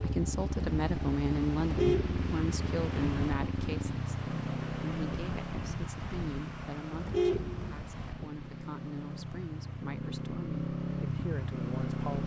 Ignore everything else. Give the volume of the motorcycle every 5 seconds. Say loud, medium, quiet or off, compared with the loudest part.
loud, medium, loud.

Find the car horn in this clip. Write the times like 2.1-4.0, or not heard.
1.6-2.9, 6.9-7.9.